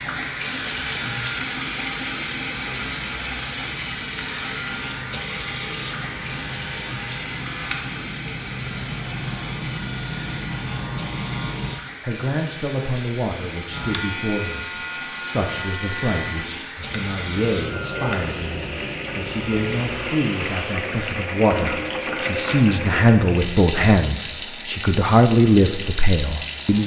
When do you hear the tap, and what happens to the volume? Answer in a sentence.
You can hear the tap from 0.0 to 26.8 s, getting quieter then louder.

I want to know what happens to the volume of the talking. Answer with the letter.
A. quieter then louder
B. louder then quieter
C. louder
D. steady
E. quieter
C.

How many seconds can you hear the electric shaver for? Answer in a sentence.
The electric shaver can be heard for 18 seconds in total.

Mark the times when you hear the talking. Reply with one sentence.
The talking can be heard from 12.0 to 26.8 s.